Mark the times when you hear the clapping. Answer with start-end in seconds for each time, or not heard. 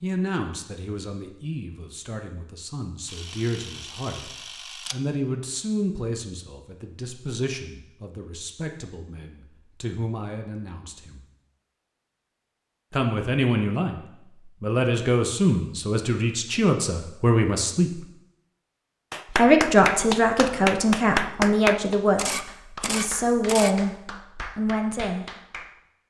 19.1-25.8.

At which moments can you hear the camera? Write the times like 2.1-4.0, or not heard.
3.0-5.0, 22.1-23.8.